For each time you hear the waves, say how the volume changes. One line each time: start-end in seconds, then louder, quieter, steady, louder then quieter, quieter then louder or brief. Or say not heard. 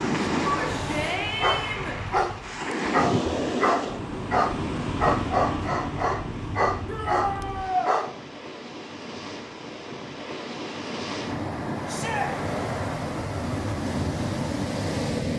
0.0-15.3 quieter then louder.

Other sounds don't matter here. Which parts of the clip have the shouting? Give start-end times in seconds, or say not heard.
0.4-2.0, 6.8-8.0, 11.8-12.3.